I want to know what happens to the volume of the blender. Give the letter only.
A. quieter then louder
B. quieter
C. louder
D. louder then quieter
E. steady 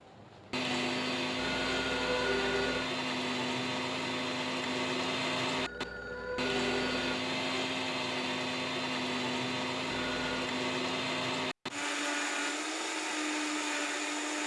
E.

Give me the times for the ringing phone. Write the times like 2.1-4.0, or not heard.
1.4-2.9, 5.5-7.2, 9.8-10.3.